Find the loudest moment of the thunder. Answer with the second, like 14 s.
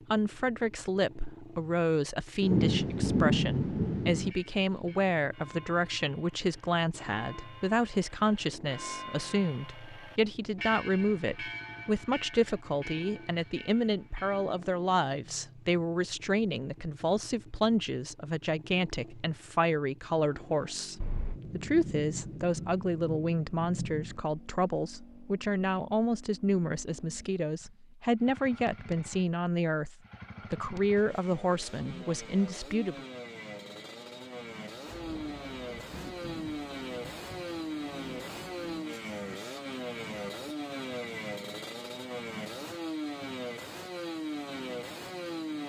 3 s.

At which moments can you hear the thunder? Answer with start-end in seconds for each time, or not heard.
2.4-4.3, 21.0-24.2, 34.9-38.8.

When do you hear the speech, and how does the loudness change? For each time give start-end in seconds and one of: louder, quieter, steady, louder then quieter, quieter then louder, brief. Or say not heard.
0.1-33.0 steady.